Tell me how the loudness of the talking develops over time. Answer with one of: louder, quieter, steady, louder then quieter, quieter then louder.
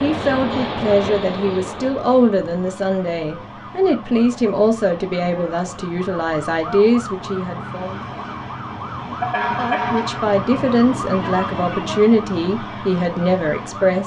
steady.